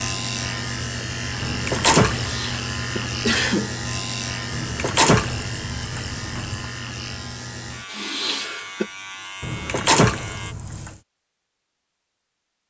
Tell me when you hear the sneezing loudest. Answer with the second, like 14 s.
3 s.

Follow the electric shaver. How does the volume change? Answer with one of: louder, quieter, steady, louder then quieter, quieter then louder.
quieter.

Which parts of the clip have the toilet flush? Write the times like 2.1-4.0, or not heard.
1.4-2.4, 4.5-6.7, 9.4-10.9.